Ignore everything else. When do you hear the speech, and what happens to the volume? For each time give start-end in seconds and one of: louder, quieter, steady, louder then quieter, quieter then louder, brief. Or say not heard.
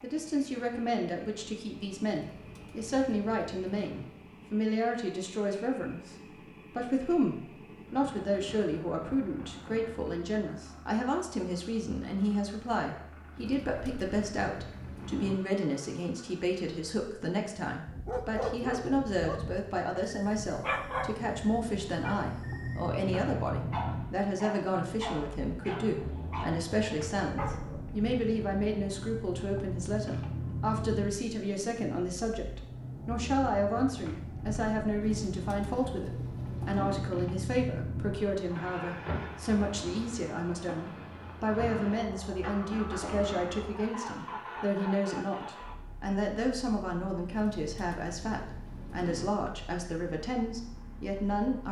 0.0-51.6 steady.